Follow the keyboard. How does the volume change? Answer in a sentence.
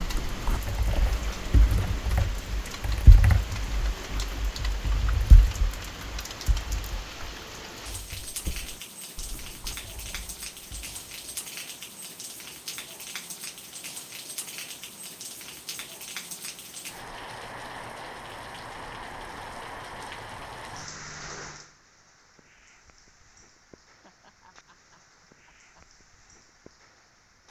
The loudness of the keyboard goes up, then down.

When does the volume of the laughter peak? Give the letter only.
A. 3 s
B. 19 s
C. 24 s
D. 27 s
C.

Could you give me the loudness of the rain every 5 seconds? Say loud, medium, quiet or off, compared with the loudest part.
loud, loud, loud, loud, medium, quiet.